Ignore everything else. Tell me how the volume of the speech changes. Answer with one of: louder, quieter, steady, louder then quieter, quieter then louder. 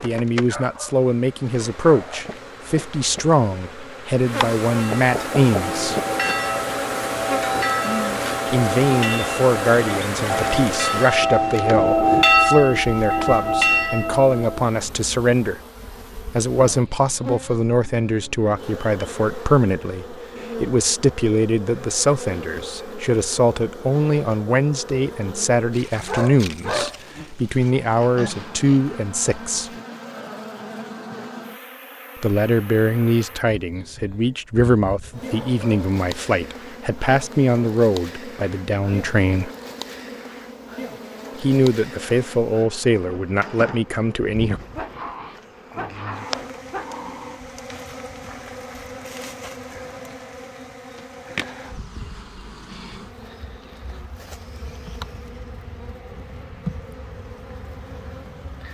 steady.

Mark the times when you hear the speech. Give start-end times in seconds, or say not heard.
0.0-6.0, 8.5-15.6, 16.3-29.7, 32.2-39.5, 41.4-44.6.